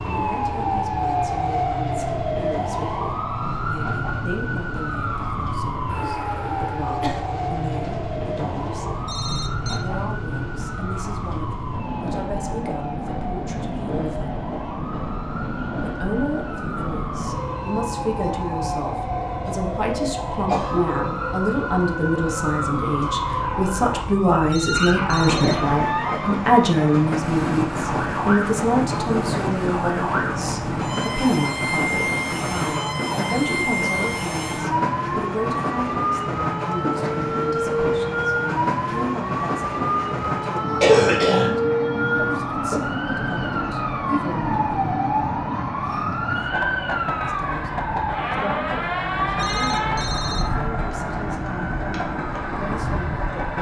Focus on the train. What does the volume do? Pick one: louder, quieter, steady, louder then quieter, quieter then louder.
steady.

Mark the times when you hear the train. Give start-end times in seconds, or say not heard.
0.0-53.5.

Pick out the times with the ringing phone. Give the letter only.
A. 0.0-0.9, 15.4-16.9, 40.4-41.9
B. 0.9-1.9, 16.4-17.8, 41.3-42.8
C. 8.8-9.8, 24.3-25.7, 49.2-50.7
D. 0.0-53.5
C.